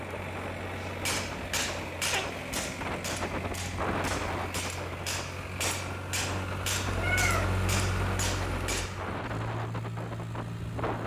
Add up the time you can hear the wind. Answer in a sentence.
The wind can be heard for 11 seconds in total.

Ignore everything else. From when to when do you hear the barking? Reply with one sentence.
The barking can't be heard in this clip.